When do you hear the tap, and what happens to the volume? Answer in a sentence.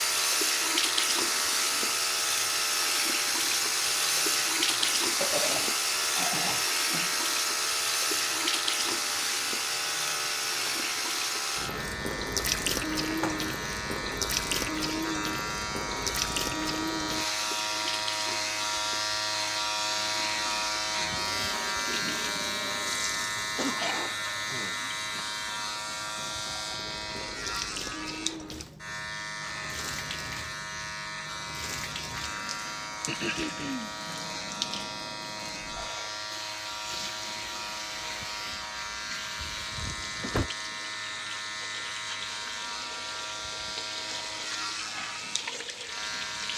The tap can be heard from 0.0 to 46.5 s, getting quieter.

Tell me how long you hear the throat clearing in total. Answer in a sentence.
You can hear the throat clearing for 4 seconds altogether.